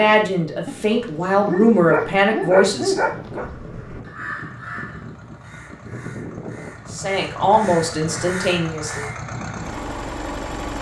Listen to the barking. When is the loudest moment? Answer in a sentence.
The volume of the barking peaks at 3 seconds.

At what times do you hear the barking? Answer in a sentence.
The barking can be heard from 0.7 to 3.5 s.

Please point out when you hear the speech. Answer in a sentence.
The speech can be heard from 0.0 to 3.5 s and from 6.9 to 9.1 s.